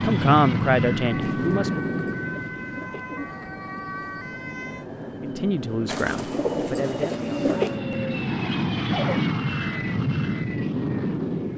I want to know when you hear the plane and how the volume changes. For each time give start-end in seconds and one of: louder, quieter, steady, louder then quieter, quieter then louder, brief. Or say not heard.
0.0-11.5 quieter then louder.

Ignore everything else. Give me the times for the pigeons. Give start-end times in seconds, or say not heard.
1.2-3.4, 5.8-7.8.